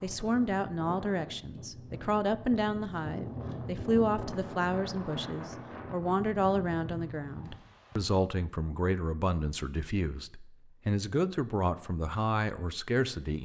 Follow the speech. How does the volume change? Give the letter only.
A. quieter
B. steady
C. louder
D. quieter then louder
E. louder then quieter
B.